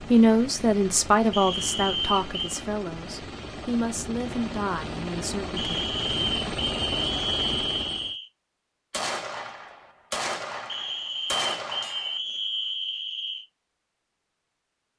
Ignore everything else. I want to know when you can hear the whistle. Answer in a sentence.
You can hear the whistle from 1.3 to 2.6 s, from 5.5 to 8.3 s and from 10.7 to 13.4 s.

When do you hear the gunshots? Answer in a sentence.
The gunshots can be heard from 8.9 to 12.2 s.